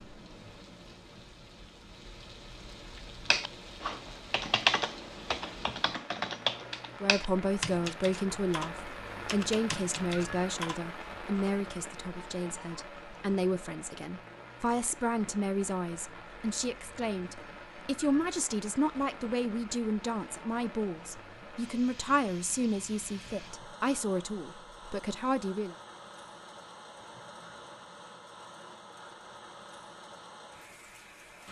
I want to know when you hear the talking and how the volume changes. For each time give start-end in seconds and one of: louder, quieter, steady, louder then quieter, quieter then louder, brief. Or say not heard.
7.0-25.8 steady.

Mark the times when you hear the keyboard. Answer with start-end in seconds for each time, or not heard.
3.3-10.8.